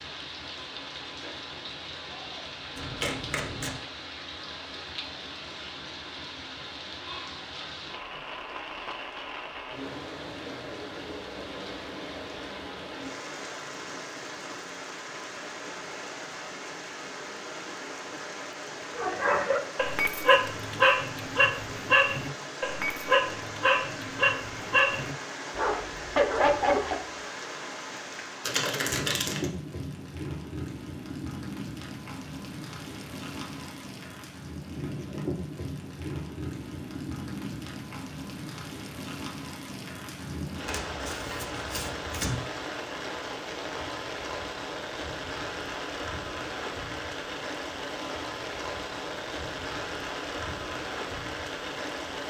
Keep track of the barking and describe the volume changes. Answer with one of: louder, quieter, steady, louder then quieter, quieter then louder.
steady.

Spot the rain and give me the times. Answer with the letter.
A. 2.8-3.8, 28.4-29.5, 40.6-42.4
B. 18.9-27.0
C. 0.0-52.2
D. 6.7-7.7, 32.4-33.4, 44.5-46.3
C.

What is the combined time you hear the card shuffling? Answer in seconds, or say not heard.
4 s.